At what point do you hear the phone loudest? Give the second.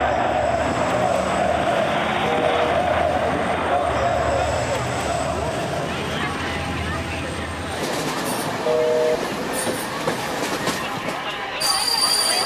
9 s.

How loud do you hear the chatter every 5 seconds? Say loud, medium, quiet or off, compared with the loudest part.
loud, medium, medium.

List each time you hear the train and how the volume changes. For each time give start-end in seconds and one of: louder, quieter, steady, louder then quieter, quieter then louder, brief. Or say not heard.
0.0-12.4 louder.